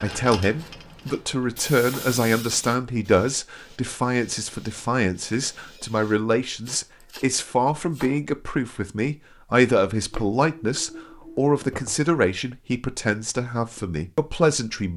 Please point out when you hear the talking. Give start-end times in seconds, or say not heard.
0.0-14.9.